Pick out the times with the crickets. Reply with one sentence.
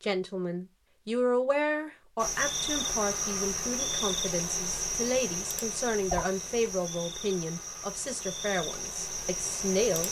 The crickets can be heard from 2.1 to 10.0 s.